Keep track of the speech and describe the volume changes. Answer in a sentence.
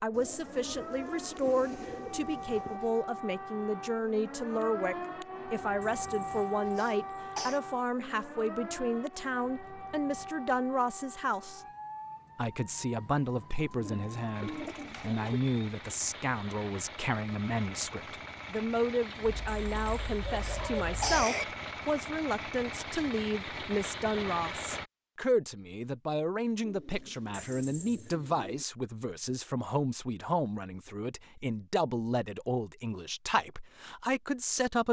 The volume of the speech stays about the same.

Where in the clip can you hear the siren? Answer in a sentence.
The siren can be heard from 0.0 to 15.6 s.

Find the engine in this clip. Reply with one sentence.
You can hear the engine from 14.3 to 24.9 s.